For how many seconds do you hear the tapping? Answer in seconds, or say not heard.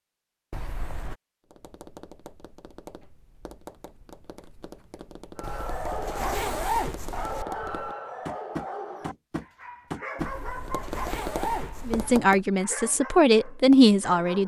11 s.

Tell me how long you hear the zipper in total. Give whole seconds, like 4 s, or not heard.
5 s.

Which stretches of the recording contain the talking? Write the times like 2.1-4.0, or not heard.
11.8-14.4.